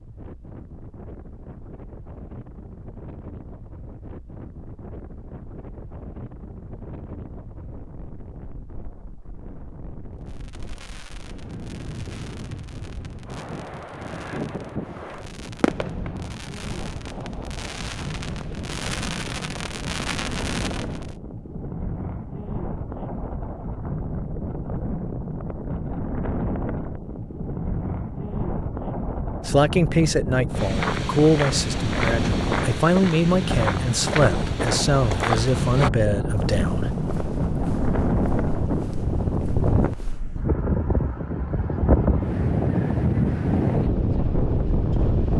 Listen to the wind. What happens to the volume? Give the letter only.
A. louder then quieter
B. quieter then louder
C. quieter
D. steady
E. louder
E.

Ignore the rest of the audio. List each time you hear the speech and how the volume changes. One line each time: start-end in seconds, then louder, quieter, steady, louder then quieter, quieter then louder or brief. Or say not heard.
29.4-36.9 steady.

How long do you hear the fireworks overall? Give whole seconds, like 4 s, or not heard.
11 s.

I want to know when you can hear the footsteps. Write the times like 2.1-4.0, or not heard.
30.6-40.2.